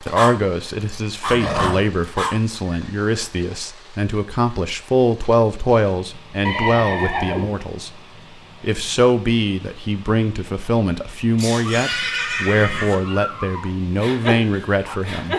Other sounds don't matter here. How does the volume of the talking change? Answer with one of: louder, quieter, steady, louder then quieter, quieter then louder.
steady.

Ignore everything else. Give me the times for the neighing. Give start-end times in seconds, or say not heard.
1.3-1.9, 6.5-7.6, 11.3-12.9.